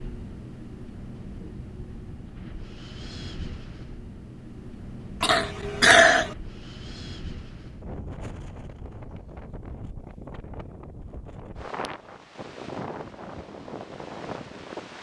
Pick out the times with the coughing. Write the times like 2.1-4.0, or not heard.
5.2-6.3.